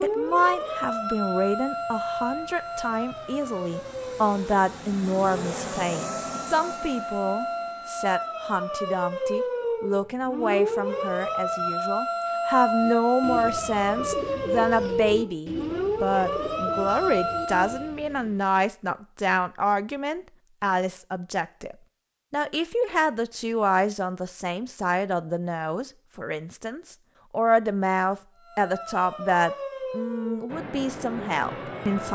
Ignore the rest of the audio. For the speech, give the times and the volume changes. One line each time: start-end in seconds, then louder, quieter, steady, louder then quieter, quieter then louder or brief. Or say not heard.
0.0-32.1 steady.